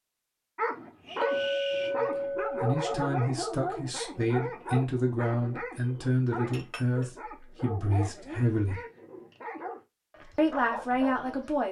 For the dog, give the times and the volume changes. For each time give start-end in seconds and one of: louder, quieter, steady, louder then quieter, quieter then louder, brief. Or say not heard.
0.6-11.6 quieter.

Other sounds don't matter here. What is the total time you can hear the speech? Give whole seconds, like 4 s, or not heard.
8 s.